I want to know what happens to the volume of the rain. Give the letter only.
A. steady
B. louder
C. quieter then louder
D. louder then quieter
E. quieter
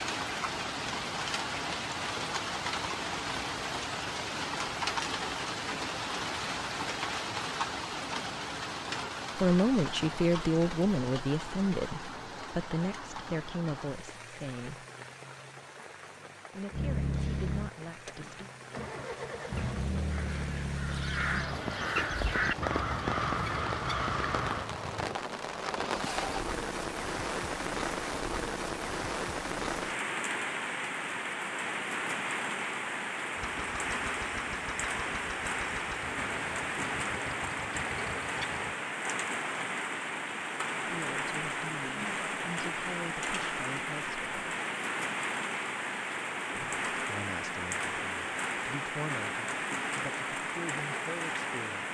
C.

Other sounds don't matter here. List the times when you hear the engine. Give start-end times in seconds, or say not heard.
16.7-26.5, 33.4-38.8.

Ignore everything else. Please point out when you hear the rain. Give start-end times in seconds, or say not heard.
0.0-51.8.